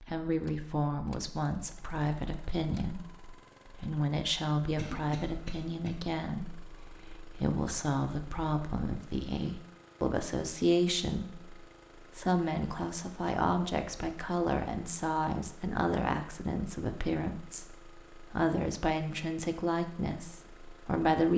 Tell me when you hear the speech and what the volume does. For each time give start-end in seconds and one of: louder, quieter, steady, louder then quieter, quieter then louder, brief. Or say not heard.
0.0-21.3 steady.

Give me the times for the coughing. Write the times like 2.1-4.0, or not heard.
4.8-5.9.